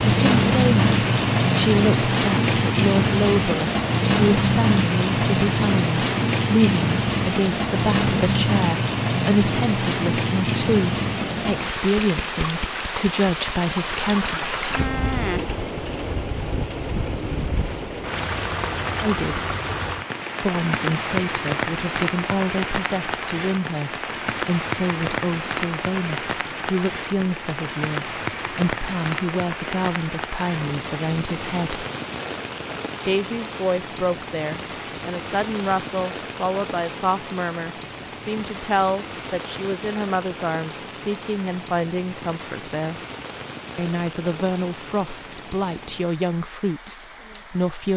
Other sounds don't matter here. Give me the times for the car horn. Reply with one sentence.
The car horn can't be heard in this clip.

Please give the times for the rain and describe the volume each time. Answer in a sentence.
You can hear the rain from 0.0 to 47.9 s, getting quieter.